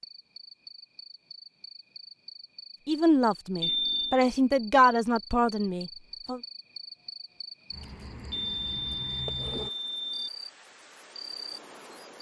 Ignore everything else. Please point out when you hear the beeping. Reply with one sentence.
The beeping can be heard from 3.6 to 4.2 s and from 8.3 to 10.3 s.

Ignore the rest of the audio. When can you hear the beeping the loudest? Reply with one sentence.
The volume of the beeping peaks at 4 seconds.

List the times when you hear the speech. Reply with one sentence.
You can hear the speech from 2.9 to 6.4 s.